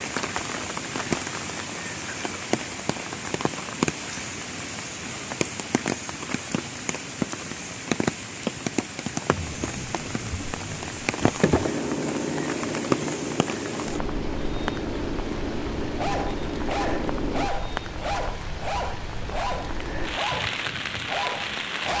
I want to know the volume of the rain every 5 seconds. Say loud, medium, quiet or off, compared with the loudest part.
loud, loud, loud, medium, loud.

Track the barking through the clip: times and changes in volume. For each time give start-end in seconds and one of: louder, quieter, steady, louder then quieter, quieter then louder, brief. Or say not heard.
15.9-21.9 steady.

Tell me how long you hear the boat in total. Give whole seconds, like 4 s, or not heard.
8 s.